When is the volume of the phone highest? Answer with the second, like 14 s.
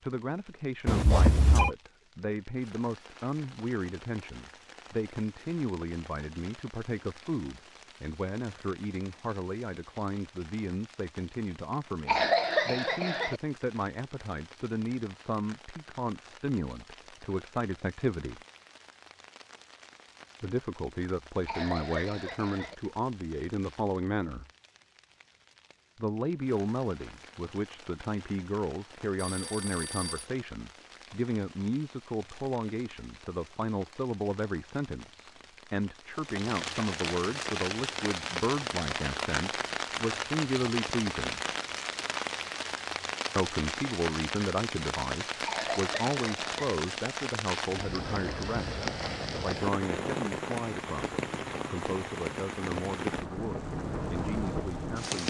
1 s.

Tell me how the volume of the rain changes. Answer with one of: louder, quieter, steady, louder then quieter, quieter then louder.
louder.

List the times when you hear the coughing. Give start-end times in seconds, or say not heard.
12.1-13.4, 21.4-22.8, 45.5-46.7.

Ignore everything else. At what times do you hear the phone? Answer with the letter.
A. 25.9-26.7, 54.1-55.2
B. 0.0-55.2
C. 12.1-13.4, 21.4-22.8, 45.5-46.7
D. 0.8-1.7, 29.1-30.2
D.